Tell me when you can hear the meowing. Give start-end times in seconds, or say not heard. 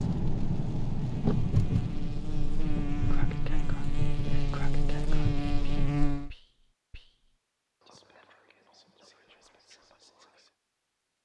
not heard.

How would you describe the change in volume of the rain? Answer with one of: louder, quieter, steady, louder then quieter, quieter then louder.
quieter.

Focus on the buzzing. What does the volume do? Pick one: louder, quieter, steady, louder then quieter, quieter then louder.
louder.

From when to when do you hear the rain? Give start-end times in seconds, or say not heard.
0.0-6.0.